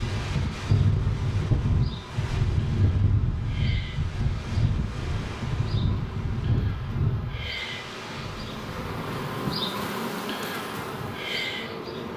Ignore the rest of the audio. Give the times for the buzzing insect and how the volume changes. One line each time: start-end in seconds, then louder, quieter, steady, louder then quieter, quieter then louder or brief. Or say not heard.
0.0-12.1 louder.